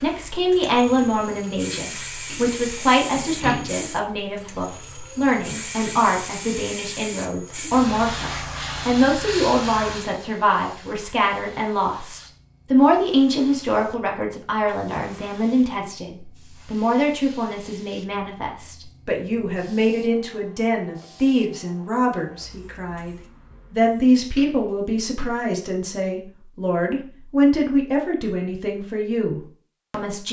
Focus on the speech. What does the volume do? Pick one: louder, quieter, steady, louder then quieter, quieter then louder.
steady.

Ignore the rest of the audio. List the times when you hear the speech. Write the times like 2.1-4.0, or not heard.
0.0-30.2.